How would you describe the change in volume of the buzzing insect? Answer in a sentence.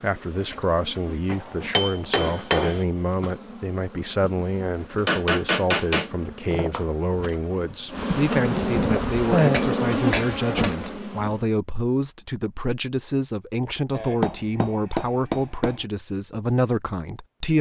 The volume of the buzzing insect goes up.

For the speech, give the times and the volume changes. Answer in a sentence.
You can hear the speech from 0.0 to 17.5 s, at a steady volume.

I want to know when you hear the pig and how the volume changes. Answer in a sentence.
You can't hear the pig here.